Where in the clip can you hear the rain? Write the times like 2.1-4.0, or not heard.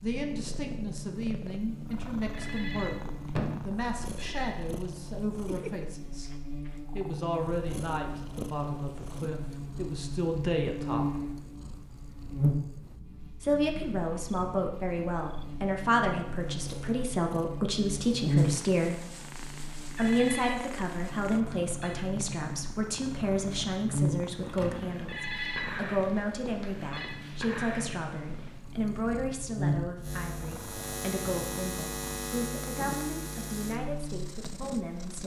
not heard.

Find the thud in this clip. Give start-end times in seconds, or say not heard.
3.2-3.8, 24.4-25.1.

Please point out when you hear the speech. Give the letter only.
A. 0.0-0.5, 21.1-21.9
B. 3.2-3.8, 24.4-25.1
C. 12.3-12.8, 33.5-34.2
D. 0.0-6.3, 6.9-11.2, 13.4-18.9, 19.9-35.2
D.